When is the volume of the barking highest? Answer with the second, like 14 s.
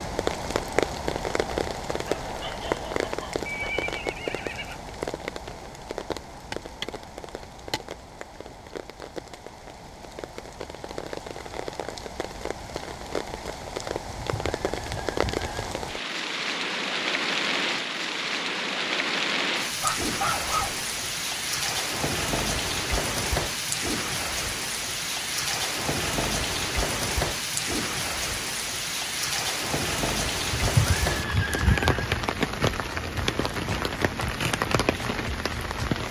20 s.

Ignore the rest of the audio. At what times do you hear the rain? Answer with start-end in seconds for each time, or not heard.
0.0-36.0.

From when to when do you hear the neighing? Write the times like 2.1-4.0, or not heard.
3.5-4.8, 14.1-15.7, 30.5-32.1.